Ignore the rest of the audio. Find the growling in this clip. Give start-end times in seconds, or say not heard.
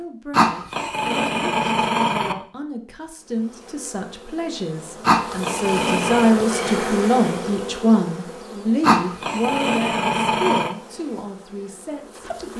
0.3-2.4, 5.0-6.3, 8.8-10.8.